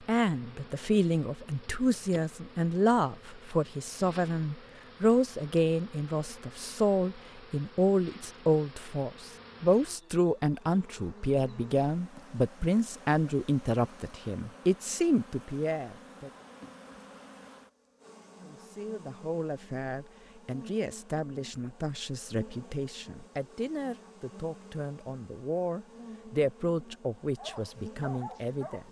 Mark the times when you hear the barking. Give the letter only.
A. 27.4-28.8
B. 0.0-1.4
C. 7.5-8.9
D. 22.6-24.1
A.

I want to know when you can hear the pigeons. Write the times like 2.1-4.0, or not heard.
not heard.